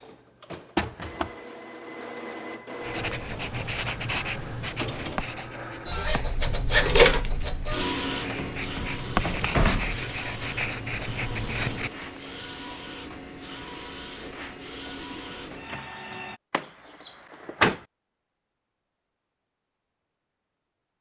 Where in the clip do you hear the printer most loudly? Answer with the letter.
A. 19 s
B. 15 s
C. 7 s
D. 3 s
C.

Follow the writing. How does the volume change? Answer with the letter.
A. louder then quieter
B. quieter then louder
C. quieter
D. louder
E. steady
B.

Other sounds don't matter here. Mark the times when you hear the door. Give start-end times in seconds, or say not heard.
0.8-1.3, 8.3-10.0, 16.5-17.8.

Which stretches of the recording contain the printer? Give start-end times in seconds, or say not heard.
0.0-16.4.